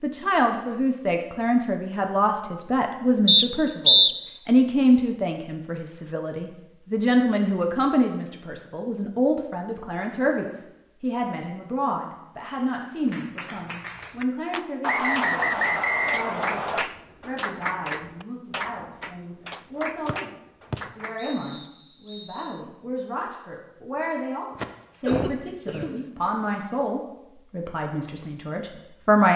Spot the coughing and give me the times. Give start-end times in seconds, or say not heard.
24.6-26.0.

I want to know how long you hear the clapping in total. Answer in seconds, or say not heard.
8 s.